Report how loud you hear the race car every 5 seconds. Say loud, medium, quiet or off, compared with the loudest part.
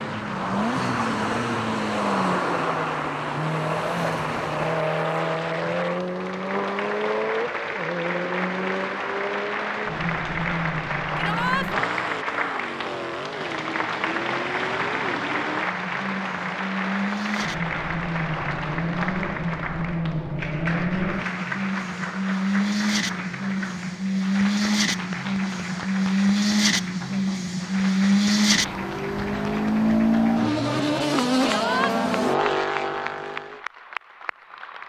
loud, medium, medium, medium, loud, loud, loud.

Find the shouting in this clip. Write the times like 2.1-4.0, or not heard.
11.2-11.7, 31.4-31.9.